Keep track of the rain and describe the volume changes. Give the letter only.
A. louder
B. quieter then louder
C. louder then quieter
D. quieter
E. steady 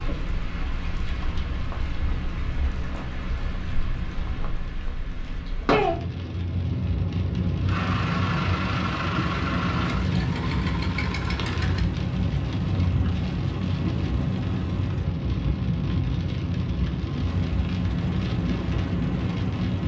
A.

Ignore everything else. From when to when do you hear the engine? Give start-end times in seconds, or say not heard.
7.7-15.1, 17.2-19.8.